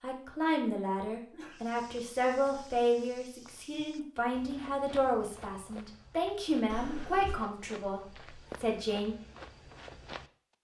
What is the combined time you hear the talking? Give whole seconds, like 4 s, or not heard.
9 s.